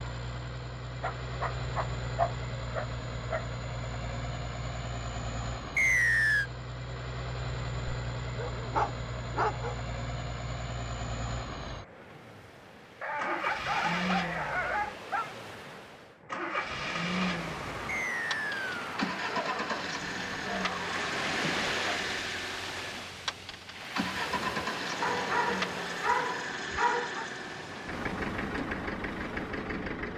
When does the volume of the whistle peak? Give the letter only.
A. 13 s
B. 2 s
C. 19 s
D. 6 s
D.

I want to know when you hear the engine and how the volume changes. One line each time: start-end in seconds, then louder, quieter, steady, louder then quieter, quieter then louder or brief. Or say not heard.
0.0-30.1 steady.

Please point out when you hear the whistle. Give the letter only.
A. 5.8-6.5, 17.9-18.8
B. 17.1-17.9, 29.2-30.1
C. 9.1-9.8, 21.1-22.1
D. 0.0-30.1
A.